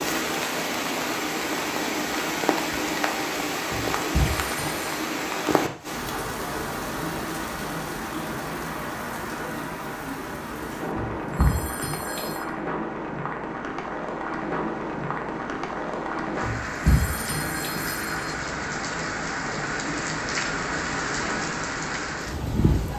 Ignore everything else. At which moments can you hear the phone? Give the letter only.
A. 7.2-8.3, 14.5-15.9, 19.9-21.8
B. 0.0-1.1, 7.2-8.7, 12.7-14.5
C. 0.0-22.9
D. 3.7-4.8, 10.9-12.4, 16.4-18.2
D.